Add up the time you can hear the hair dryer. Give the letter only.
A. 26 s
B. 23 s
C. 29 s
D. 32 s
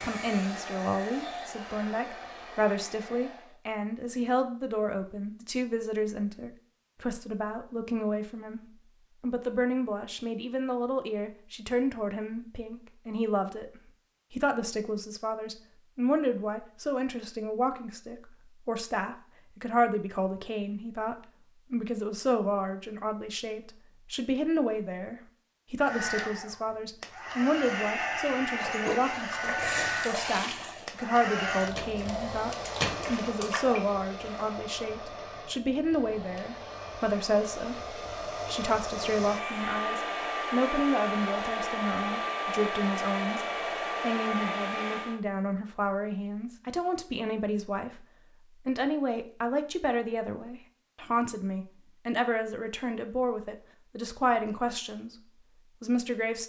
B.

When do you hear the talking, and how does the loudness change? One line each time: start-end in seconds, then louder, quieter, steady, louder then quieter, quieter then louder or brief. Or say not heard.
0.0-55.1 steady
55.8-56.4 brief.